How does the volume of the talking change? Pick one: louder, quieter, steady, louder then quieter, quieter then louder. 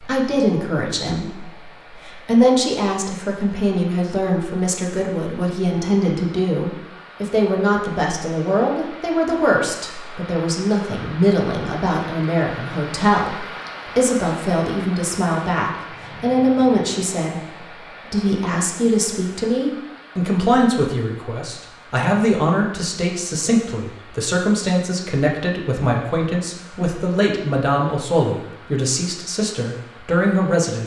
steady.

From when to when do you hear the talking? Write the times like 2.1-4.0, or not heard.
0.0-30.8.